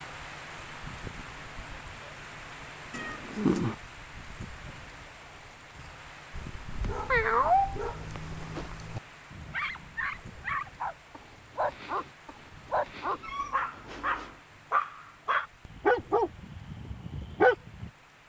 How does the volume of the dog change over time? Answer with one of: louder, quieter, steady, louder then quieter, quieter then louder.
louder.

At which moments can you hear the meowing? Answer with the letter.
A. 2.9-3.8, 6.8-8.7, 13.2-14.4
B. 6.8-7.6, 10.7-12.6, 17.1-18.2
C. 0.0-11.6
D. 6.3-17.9
A.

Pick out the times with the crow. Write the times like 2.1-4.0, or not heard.
not heard.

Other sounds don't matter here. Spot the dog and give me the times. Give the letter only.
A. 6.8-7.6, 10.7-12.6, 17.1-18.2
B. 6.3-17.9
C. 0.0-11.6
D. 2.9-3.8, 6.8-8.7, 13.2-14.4
B.